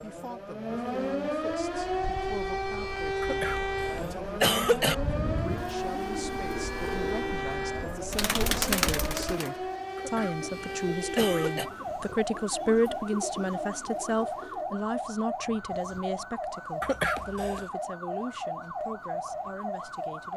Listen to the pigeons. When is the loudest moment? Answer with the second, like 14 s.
9 s.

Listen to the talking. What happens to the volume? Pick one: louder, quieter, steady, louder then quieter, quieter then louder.
louder then quieter.